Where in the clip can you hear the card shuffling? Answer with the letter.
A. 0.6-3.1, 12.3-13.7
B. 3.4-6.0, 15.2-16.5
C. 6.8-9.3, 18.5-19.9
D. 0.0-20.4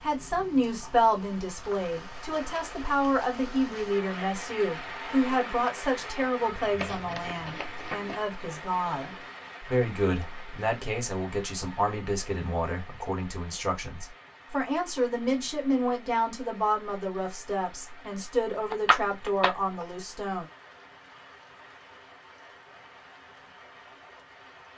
C.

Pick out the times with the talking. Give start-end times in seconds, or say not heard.
0.0-20.4.